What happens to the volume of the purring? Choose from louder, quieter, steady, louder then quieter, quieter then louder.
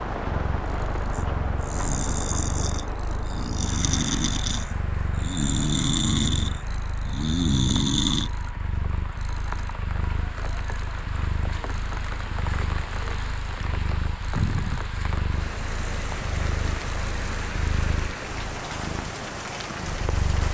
steady.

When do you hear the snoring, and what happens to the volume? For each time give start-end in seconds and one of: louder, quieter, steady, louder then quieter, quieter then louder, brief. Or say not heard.
1.1-8.3 louder.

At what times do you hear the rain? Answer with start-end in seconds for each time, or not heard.
0.0-20.4.